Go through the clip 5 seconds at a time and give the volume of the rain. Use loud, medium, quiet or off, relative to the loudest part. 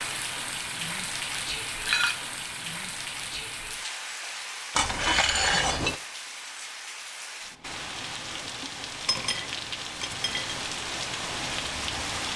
loud, medium, loud.